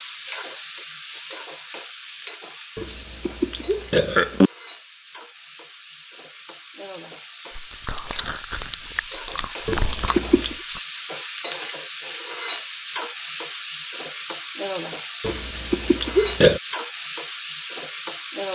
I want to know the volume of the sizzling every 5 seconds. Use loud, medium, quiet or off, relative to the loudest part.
medium, medium, loud, loud.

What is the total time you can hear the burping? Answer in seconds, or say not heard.
4 s.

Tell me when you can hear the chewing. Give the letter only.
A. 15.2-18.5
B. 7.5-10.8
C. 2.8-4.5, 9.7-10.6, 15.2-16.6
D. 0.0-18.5
B.